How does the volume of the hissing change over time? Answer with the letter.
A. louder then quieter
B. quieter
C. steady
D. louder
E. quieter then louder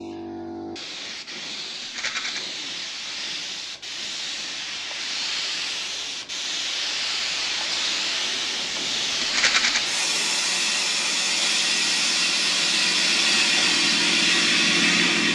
D.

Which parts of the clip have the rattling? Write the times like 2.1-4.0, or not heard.
1.8-2.4, 9.2-9.8.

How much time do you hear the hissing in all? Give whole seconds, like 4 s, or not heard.
15 s.